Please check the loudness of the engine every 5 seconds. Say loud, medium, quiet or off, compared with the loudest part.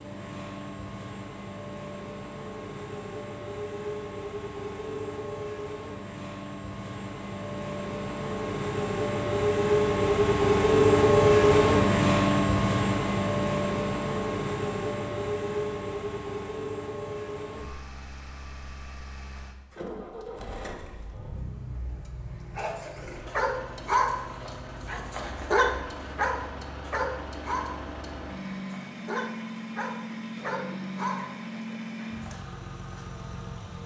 quiet, medium, loud, quiet, quiet, quiet, quiet.